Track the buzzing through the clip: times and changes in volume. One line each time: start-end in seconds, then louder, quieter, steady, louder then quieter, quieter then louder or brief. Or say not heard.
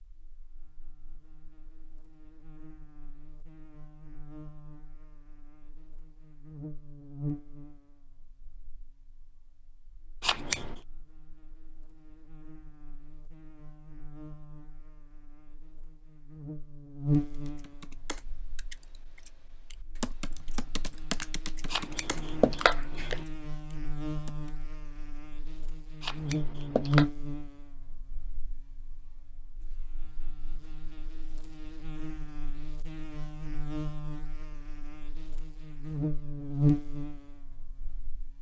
0.0-38.3 quieter then louder.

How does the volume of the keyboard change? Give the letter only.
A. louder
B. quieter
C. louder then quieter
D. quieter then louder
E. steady
C.